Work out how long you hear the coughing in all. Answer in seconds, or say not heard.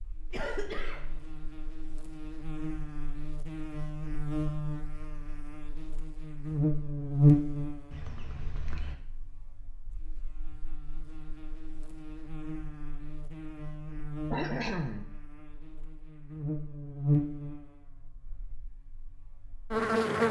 3 s.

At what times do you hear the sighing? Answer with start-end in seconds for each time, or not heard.
not heard.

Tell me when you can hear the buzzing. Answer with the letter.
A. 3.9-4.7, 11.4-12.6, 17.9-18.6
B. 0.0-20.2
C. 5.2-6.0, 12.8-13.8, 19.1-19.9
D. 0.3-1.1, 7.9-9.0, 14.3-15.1
B.